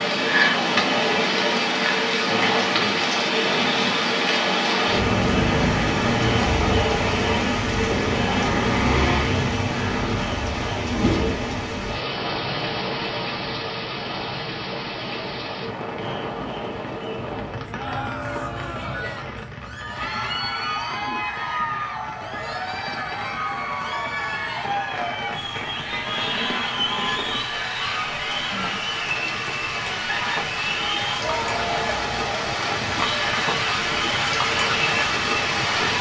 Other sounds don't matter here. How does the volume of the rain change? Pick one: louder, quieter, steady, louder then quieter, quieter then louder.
quieter then louder.